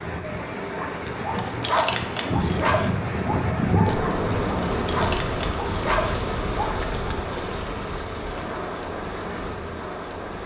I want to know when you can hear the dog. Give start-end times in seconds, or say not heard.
0.7-6.9.